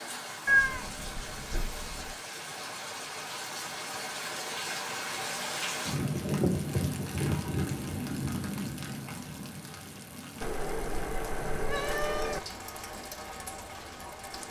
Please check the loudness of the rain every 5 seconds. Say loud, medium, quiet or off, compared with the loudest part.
medium, loud, medium.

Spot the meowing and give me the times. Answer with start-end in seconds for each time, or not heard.
0.5-2.1, 10.4-12.4.